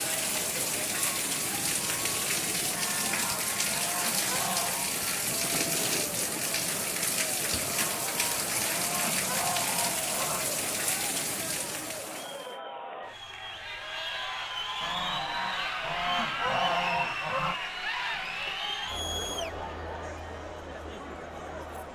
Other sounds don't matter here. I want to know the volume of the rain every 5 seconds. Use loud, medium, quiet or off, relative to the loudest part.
loud, loud, loud, off, off.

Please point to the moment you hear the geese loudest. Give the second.
17 s.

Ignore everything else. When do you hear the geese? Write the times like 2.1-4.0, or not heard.
2.6-5.0, 7.7-10.5, 14.8-17.6.